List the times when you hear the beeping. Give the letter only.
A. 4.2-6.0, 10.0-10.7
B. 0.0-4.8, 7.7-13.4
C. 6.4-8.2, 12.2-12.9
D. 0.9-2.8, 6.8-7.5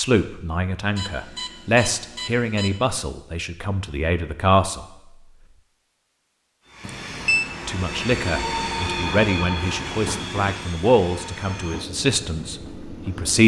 D.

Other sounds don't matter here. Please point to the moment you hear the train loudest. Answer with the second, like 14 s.
9 s.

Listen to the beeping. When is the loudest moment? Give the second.
7 s.